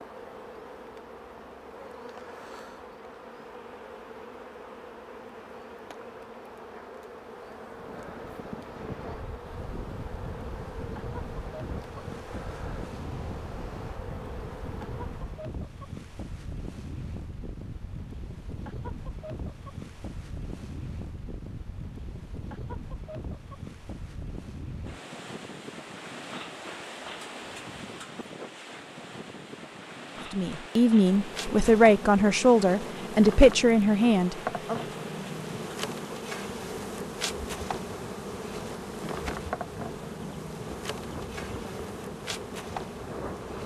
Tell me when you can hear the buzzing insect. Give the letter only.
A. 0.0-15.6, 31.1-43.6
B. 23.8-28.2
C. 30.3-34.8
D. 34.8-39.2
A.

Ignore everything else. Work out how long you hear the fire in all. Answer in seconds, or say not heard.
not heard.